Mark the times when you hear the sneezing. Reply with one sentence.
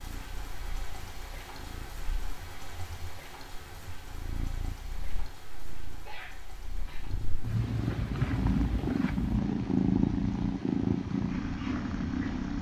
The sneezing can be heard from 6.0 to 7.2 s.